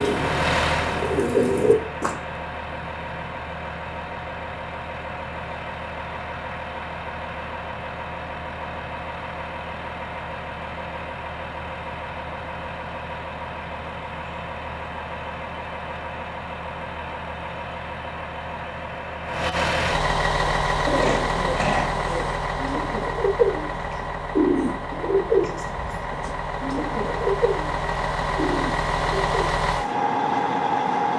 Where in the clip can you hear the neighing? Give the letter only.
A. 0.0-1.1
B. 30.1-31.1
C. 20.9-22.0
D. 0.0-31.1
C.